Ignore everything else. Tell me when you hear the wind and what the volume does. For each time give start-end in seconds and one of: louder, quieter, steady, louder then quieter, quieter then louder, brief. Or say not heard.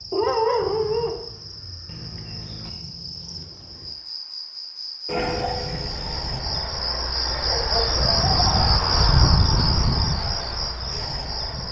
5.3-11.6 louder then quieter.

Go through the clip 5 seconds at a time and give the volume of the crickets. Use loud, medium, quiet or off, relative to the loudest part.
quiet, loud, medium.